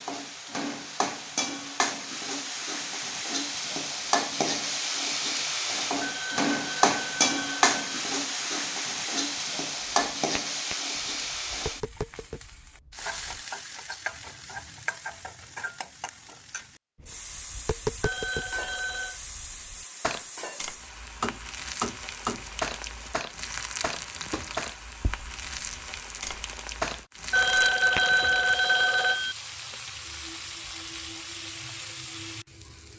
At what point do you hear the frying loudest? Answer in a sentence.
The volume of the frying peaks at 7 seconds.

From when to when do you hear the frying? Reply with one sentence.
The frying can be heard from 0.0 to 32.9 s.